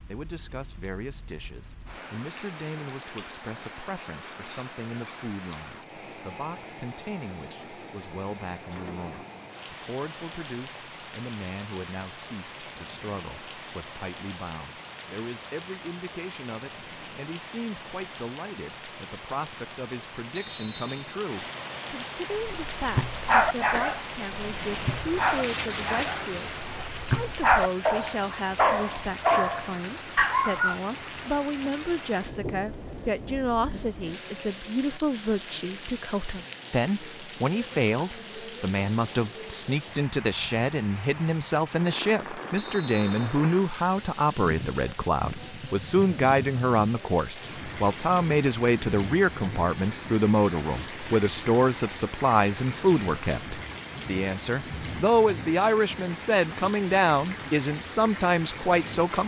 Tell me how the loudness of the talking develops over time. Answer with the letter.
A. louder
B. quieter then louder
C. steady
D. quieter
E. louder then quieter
A.